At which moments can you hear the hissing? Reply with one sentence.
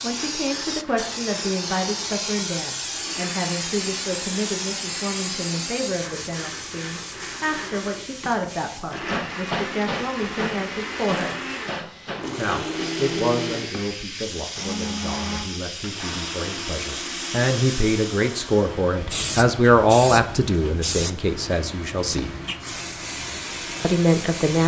The hissing can be heard from 0.0 to 24.6 s.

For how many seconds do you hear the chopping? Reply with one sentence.
The chopping can't be heard in this clip.